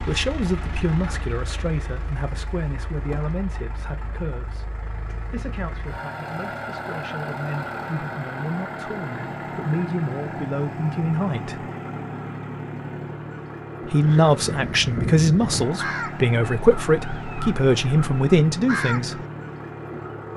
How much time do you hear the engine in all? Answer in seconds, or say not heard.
20 s.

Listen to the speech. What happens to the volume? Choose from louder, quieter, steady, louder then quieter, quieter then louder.
quieter then louder.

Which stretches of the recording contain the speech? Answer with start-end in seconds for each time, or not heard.
0.0-11.7, 13.8-19.2.